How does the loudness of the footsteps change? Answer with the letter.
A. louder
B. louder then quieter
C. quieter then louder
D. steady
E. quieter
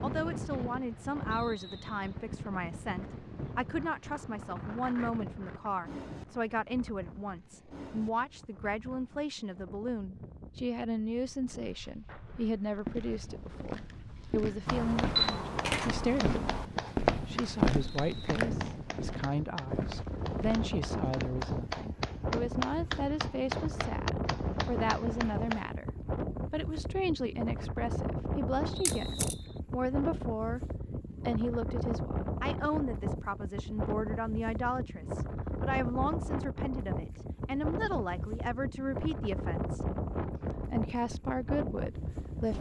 B.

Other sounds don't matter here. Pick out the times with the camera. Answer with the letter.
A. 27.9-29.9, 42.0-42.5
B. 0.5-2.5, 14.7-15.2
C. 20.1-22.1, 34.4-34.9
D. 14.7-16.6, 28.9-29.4
D.